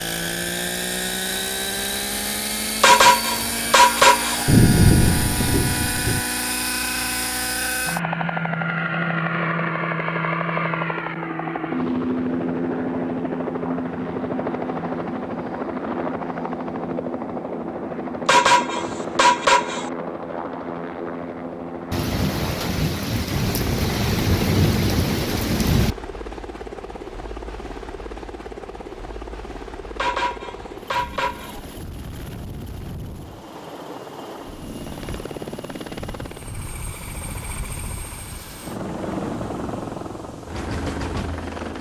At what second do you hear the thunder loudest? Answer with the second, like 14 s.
5 s.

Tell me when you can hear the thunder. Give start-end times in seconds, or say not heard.
4.5-6.2, 21.9-25.9.